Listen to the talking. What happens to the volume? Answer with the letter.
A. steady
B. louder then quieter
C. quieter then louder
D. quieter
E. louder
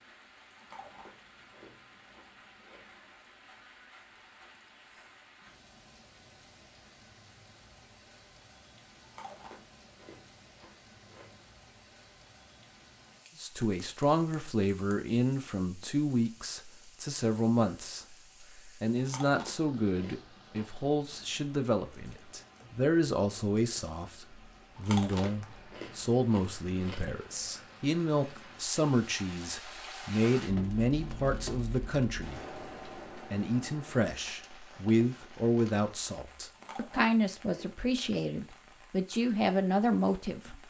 A.